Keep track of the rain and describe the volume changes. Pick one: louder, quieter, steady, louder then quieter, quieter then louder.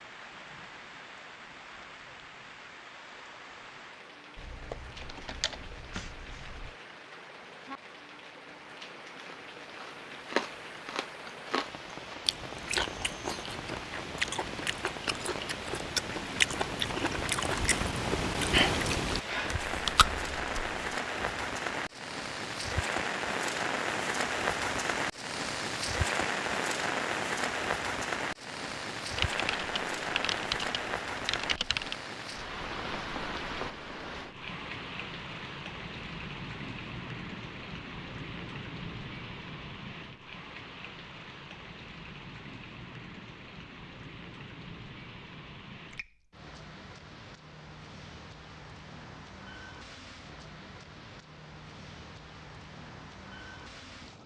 louder then quieter.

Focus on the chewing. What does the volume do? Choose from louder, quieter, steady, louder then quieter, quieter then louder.
louder.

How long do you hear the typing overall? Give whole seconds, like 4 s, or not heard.
5 s.